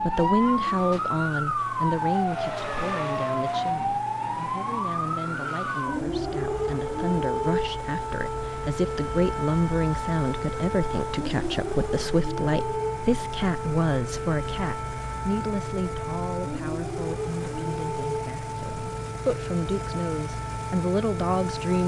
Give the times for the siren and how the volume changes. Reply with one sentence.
The siren can be heard from 0.0 to 21.8 s, getting quieter.